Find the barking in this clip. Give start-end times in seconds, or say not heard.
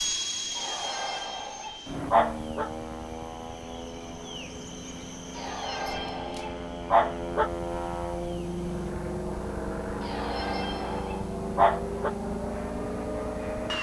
0.6-2.7, 5.3-7.5, 10.0-12.1.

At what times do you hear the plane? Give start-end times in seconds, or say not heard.
0.0-13.7.